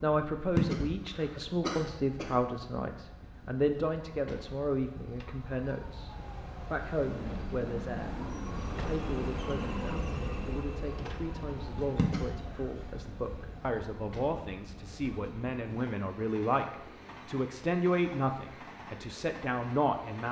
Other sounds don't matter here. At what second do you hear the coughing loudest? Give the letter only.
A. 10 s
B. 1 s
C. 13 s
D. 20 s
B.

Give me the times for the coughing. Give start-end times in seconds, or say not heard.
0.6-2.3, 11.9-12.4.